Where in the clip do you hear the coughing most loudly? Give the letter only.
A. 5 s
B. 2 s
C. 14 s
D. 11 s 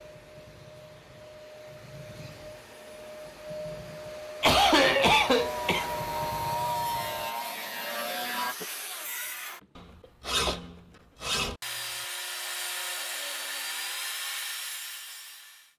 A.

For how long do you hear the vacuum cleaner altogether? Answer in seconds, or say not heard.
7 s.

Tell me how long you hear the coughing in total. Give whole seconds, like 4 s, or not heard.
2 s.